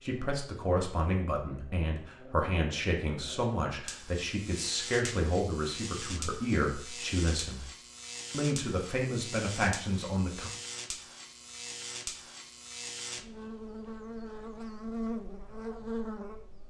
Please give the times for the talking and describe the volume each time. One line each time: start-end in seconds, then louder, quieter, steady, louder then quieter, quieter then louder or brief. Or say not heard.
0.0-7.7 steady
8.3-10.5 brief.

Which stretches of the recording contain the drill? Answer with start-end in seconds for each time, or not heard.
not heard.